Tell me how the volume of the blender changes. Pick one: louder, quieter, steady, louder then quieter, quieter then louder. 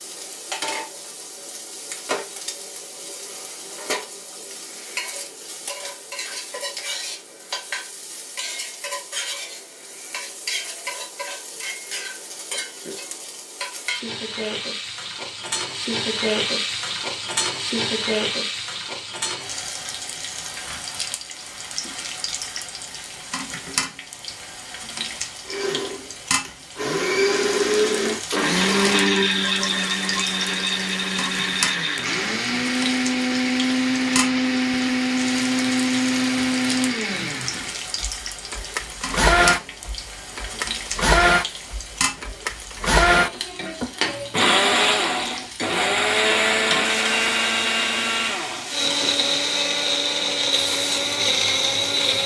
steady.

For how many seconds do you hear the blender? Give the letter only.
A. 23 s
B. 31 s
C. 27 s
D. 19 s
C.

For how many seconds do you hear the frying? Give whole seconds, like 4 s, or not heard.
52 s.